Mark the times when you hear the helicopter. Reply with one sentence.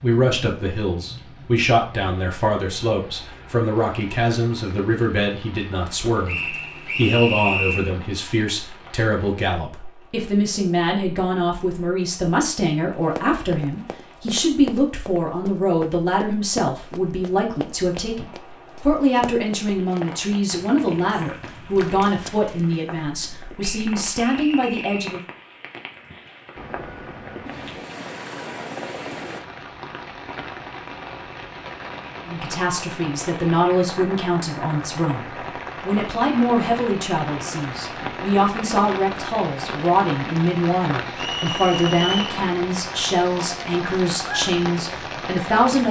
You can hear the helicopter from 26.6 to 29.4 s.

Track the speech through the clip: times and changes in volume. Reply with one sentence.
You can hear the speech from 0.0 to 25.2 s, at a steady volume; and from 32.2 to 45.8 s, at a steady volume.